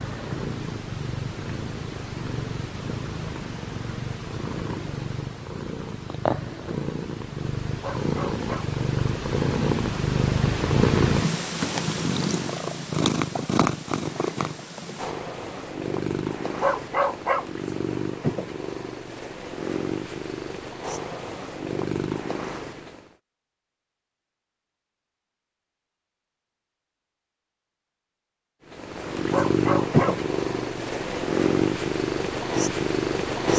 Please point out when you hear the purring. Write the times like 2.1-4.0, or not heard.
0.0-23.1, 28.7-33.5.